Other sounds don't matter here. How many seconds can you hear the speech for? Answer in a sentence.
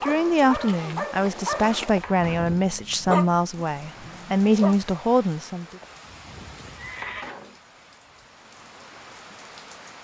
The speech can be heard for 6 seconds in total.